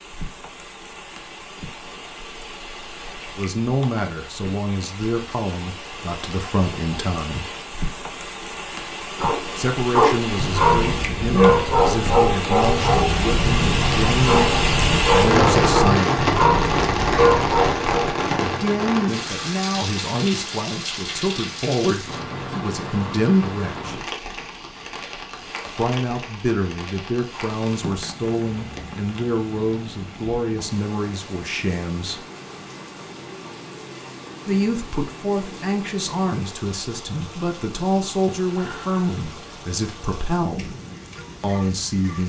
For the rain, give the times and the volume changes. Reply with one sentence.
You can hear the rain from 0.0 to 42.2 s, getting louder then quieter.